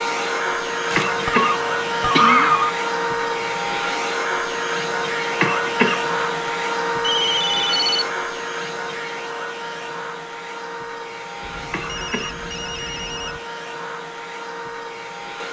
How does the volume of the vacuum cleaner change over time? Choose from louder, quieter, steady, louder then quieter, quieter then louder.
quieter.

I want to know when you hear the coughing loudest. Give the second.
2 s.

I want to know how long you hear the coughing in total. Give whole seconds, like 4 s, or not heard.
3 s.